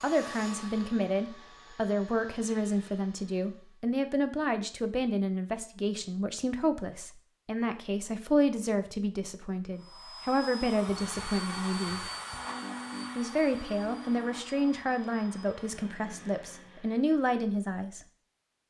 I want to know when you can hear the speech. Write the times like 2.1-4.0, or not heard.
0.0-12.1, 13.2-18.0.